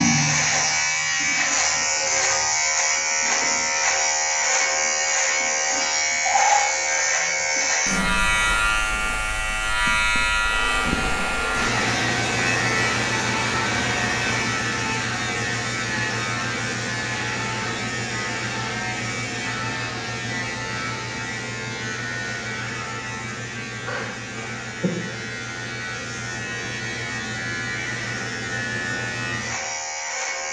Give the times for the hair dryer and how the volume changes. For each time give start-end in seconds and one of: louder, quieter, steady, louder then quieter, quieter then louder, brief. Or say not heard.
10.3-14.6 steady.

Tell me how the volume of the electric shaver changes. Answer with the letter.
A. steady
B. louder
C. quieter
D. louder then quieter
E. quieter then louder
C.